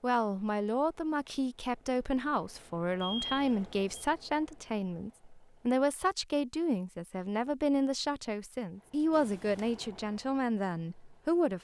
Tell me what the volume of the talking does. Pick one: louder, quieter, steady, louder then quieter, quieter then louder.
steady.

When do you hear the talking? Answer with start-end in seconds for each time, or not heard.
0.0-11.5.